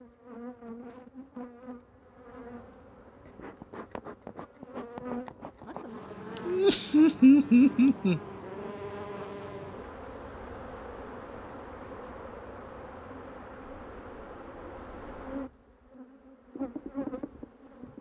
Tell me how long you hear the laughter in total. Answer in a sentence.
You can hear the laughter for 2 seconds altogether.